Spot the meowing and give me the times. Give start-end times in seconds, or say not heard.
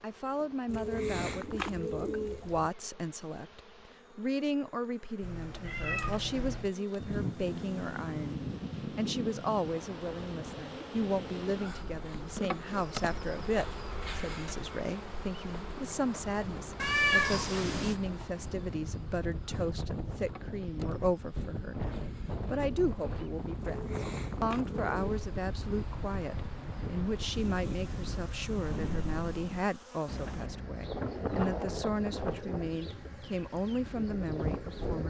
5.2-6.7, 16.8-17.9, 28.8-29.8.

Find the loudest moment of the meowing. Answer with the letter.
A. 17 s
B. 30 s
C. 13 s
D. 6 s
A.